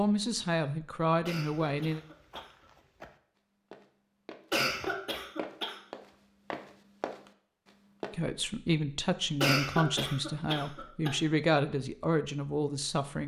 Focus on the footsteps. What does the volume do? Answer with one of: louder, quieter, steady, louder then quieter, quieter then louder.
louder.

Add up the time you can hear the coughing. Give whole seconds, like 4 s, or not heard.
5 s.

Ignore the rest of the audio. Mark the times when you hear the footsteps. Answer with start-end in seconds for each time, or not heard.
1.8-8.2.